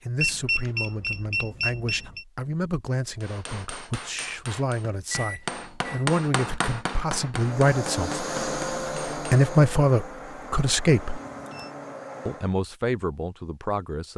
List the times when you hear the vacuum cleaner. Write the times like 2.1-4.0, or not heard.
7.3-12.6.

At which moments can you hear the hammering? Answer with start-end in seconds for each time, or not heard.
3.2-9.5.